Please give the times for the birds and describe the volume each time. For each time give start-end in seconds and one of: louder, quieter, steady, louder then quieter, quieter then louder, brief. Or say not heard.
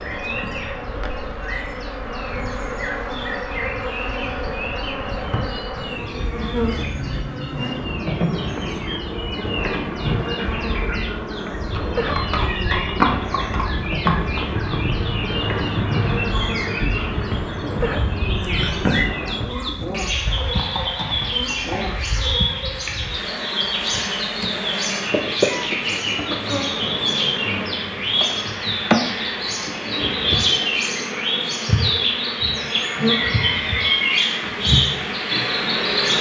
0.0-36.1 louder.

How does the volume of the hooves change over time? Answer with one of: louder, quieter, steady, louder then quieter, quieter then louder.
quieter.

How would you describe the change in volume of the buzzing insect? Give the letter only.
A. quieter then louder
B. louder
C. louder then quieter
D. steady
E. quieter
D.